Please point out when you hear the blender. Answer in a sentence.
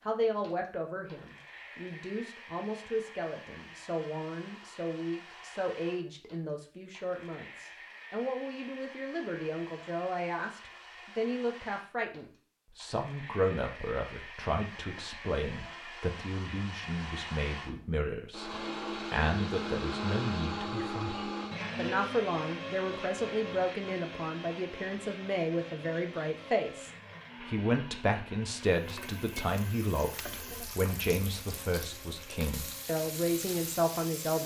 You can hear the blender from 0.0 to 34.4 s.